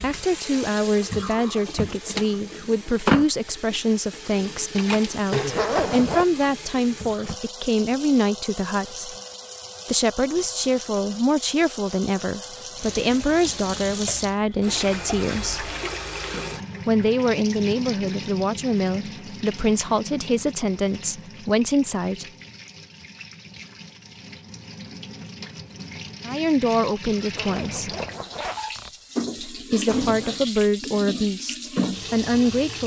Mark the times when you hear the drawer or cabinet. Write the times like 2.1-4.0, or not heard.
not heard.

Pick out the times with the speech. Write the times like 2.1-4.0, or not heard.
0.0-9.2, 9.8-15.7, 16.9-22.2, 26.2-27.9, 29.4-32.8.